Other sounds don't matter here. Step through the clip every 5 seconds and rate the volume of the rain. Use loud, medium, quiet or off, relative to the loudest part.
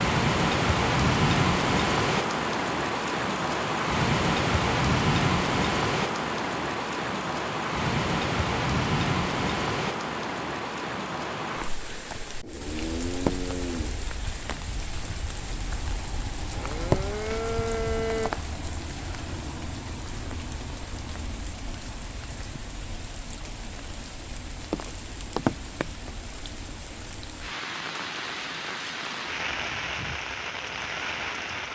loud, loud, medium, medium, quiet, medium, medium.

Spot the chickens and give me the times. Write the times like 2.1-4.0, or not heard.
not heard.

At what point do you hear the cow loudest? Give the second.
18 s.